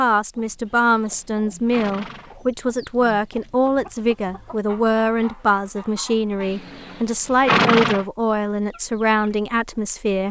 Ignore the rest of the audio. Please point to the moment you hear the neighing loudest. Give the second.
8 s.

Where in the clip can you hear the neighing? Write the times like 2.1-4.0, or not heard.
0.7-2.4, 6.4-8.1.